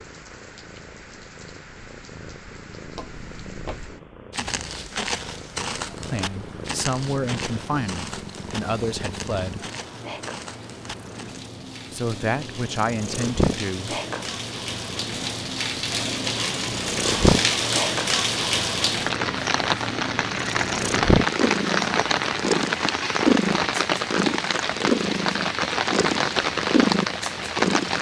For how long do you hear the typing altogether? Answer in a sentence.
The typing can't be heard in this clip.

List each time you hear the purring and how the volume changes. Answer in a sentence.
The purring can be heard from 0.0 to 27.9 s, getting louder.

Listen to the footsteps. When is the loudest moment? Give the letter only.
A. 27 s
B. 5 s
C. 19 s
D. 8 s
B.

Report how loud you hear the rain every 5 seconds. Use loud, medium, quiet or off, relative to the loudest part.
quiet, quiet, quiet, loud, loud, loud.